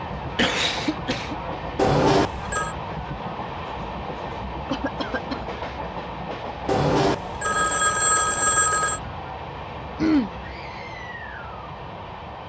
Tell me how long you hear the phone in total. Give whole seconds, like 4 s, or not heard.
3 s.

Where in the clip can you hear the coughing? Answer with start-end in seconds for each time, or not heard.
0.3-1.4, 4.7-5.4, 9.9-10.3.